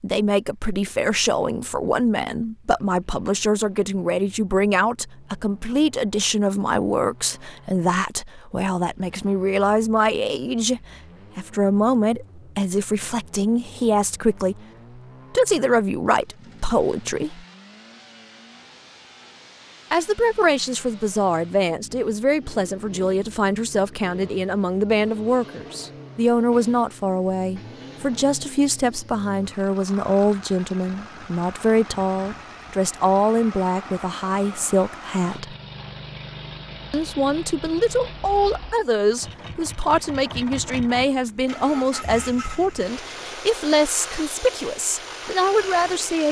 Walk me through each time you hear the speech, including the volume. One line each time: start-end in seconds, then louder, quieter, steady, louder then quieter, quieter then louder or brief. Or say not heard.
0.0-14.6 steady
15.3-17.4 brief
19.9-35.5 steady
36.9-46.2 steady.